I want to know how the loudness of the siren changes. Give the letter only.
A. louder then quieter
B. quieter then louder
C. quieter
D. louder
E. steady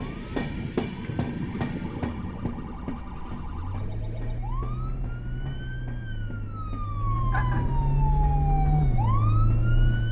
D.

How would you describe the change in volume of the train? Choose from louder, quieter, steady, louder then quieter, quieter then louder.
quieter.